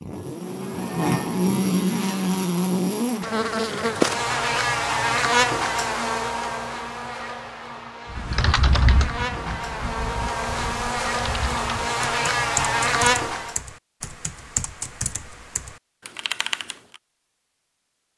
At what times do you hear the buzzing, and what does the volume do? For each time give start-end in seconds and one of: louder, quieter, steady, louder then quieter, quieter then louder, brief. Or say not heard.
0.0-13.6 quieter then louder.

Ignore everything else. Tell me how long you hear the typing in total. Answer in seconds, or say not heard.
9 s.